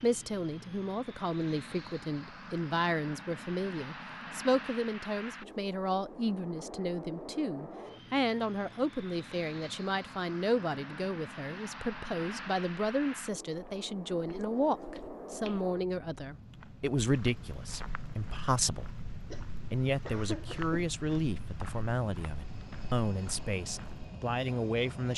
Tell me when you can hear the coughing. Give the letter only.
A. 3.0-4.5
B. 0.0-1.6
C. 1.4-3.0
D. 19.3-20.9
D.